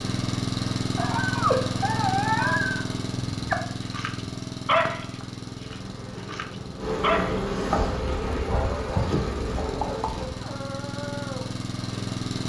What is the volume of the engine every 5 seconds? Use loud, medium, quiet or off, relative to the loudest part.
loud, medium, loud.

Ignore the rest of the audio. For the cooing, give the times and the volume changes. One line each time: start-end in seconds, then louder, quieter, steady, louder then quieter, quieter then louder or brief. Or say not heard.
not heard.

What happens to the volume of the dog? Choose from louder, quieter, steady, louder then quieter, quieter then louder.
quieter.